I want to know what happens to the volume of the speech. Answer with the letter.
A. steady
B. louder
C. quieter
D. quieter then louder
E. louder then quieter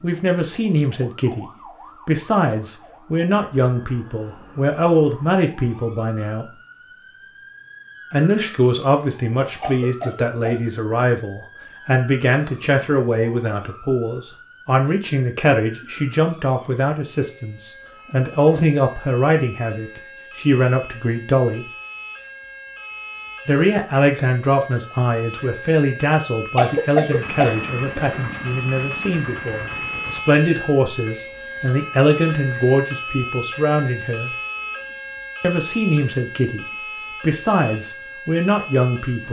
A.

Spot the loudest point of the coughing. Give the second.
27 s.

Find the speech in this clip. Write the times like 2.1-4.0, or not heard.
0.0-6.5, 8.1-21.6, 23.4-34.3, 35.4-39.2.